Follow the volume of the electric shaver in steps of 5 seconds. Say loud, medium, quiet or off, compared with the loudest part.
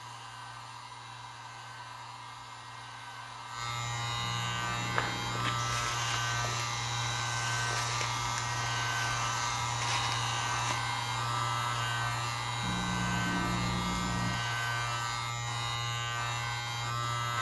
medium, loud, loud, loud.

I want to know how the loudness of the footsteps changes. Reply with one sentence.
The loudness of the footsteps stays about the same.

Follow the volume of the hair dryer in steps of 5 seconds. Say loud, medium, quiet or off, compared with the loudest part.
medium, loud, loud, medium.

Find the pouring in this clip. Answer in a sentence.
The pouring can be heard from 4.2 to 5.7 s and from 12.6 to 14.3 s.